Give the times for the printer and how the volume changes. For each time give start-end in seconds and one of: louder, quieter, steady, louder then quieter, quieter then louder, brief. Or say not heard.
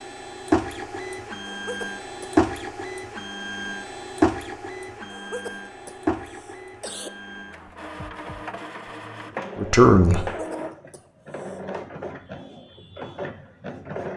0.0-14.1 quieter.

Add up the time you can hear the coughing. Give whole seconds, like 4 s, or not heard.
4 s.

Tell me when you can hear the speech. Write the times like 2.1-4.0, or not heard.
9.6-10.3.